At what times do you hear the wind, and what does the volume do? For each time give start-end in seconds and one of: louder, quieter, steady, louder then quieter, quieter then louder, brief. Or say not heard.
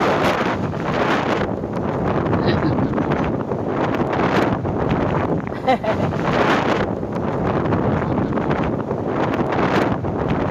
0.0-10.4 steady.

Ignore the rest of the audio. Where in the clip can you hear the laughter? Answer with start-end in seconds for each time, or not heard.
2.4-3.2, 5.5-6.1.